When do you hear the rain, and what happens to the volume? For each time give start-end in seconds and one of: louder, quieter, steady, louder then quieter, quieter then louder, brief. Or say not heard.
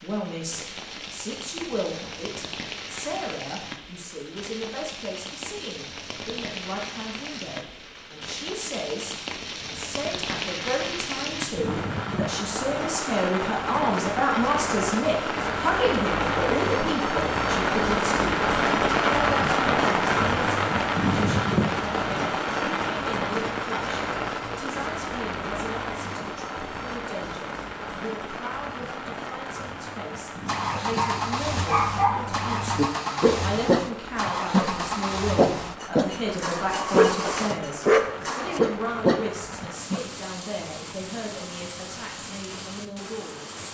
0.0-43.6 louder then quieter.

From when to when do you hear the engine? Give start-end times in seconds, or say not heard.
30.4-38.6.